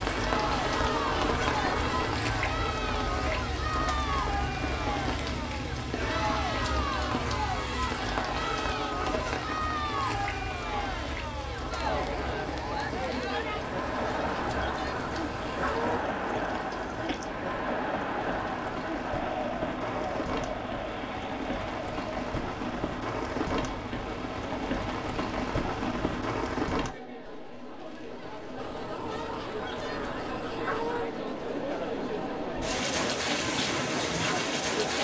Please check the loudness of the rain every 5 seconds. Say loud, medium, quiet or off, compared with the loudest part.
loud, loud, medium, medium, loud, loud, loud.